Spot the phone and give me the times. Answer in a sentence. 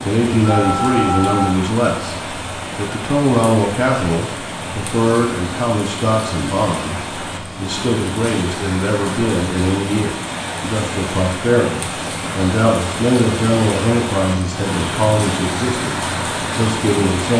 You can hear the phone from 0.5 to 1.6 s.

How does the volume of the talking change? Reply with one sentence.
The loudness of the talking stays about the same.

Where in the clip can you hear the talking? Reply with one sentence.
The talking can be heard from 0.1 to 17.3 s.